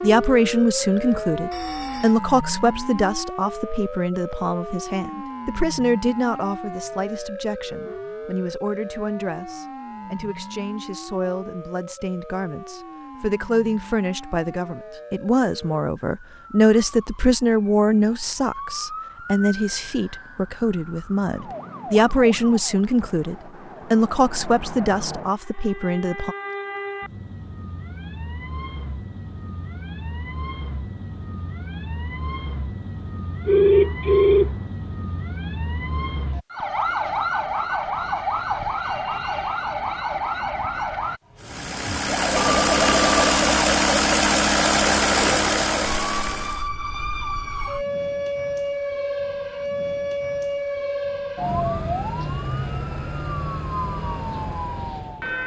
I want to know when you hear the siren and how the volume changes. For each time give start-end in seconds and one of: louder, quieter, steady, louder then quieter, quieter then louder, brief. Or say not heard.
0.0-55.4 quieter then louder.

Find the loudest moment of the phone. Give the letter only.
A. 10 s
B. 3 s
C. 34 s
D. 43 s
C.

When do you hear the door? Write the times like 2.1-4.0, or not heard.
not heard.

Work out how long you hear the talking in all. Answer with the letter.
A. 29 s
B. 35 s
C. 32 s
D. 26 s
D.